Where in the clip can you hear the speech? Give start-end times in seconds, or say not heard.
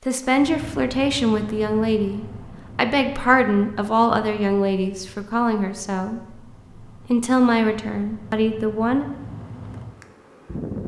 0.1-6.2, 7.1-9.1.